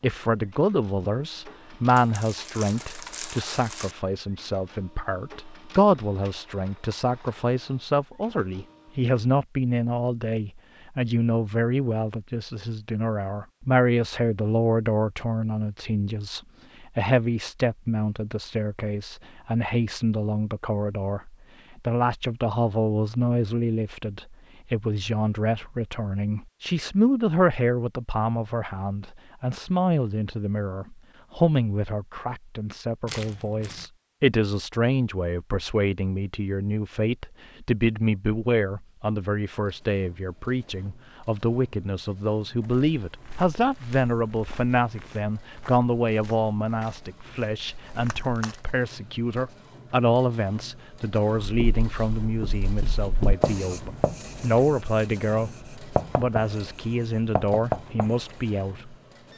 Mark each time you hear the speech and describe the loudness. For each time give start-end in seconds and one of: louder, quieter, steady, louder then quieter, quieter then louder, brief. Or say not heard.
0.0-59.0 steady.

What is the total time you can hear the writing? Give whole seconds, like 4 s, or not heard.
7 s.